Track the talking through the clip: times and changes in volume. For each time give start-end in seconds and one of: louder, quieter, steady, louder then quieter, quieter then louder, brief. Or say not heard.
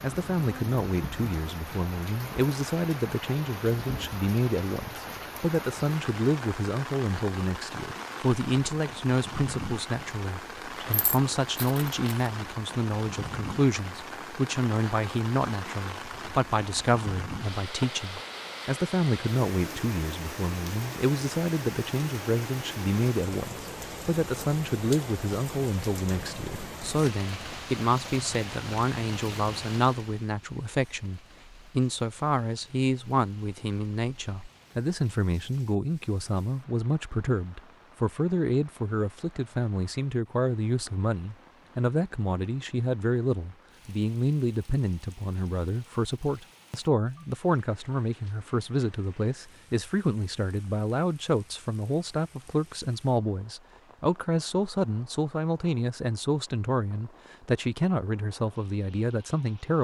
0.0-59.7 steady.